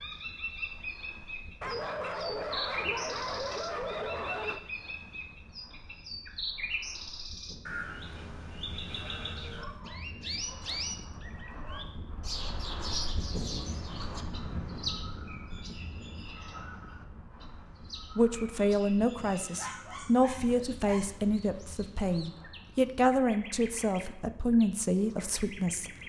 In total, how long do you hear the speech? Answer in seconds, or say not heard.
8 s.